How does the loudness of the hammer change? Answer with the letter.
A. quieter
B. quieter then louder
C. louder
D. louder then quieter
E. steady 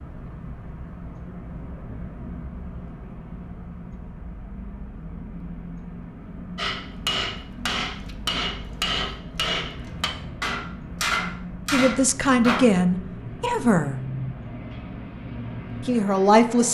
E.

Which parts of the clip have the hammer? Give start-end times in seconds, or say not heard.
6.5-12.6.